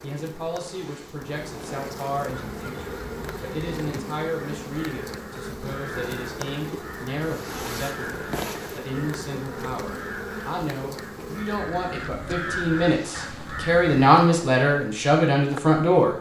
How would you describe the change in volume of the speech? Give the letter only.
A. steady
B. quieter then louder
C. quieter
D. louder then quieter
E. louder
E.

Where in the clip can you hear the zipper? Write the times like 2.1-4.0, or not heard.
0.7-1.9, 7.2-8.8, 12.8-13.4.